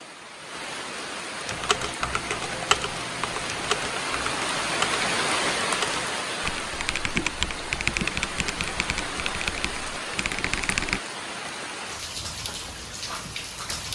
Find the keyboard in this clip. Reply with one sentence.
You can hear the keyboard from 1.4 to 11.0 s.